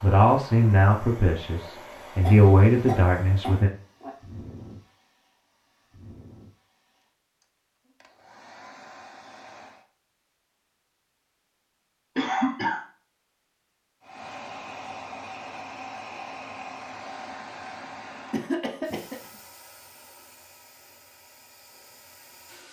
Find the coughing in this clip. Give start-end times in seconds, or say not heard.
2.2-4.1, 12.2-12.8, 18.3-19.3.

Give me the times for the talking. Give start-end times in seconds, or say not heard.
0.0-3.7.